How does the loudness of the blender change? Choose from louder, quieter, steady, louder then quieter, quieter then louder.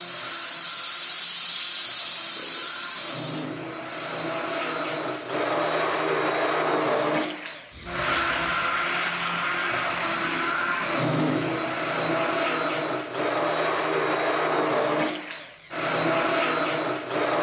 louder.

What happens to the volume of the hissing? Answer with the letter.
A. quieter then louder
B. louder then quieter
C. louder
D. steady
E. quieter
E.